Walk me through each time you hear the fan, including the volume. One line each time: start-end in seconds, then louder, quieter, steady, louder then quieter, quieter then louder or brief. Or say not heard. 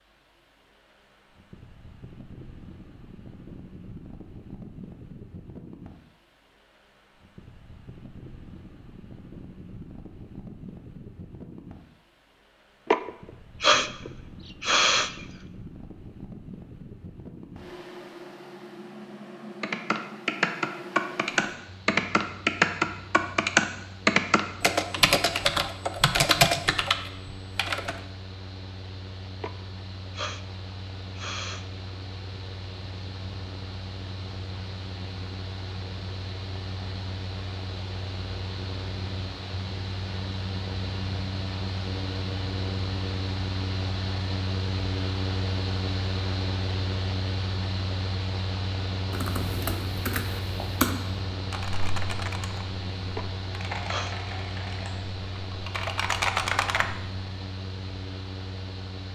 0.0-59.0 louder.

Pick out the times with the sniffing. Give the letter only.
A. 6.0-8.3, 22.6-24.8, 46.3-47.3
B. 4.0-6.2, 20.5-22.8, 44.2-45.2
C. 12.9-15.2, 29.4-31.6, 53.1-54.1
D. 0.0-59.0
C.